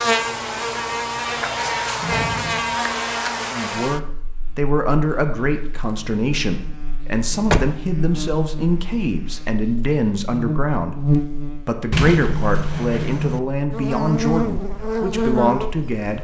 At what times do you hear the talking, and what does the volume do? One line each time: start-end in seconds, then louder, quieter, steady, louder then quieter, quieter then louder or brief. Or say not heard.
3.5-16.1 steady.